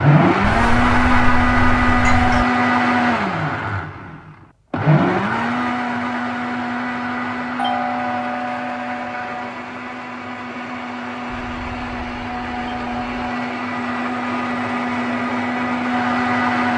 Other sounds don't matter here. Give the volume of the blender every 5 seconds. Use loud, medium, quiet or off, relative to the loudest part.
loud, medium, medium, loud.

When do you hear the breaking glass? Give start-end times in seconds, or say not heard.
not heard.